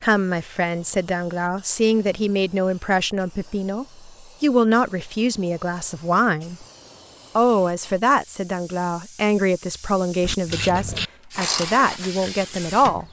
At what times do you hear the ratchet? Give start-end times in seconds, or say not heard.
10.2-13.0.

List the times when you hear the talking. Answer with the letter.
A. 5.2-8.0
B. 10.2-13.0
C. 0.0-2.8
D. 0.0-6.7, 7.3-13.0
D.